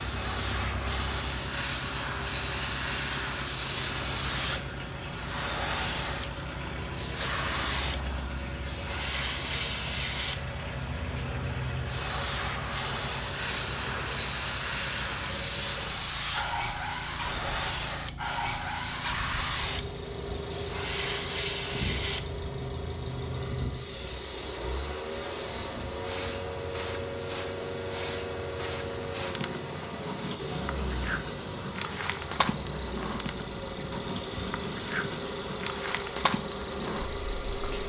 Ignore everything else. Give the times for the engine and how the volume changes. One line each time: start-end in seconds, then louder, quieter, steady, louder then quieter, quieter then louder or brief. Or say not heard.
0.0-37.8 steady.